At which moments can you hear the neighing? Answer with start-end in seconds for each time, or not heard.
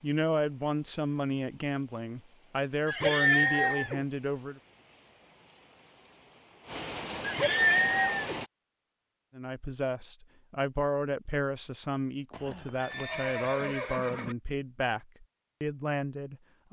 2.9-4.0, 7.2-8.4, 12.3-14.3.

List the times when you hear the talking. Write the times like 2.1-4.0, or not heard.
0.0-4.6, 9.3-16.6.